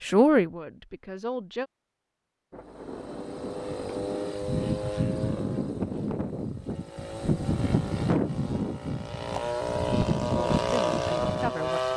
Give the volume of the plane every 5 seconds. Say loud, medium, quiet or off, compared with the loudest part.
medium, loud, loud.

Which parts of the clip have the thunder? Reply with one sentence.
You can hear the thunder from 2.5 to 4.3 s.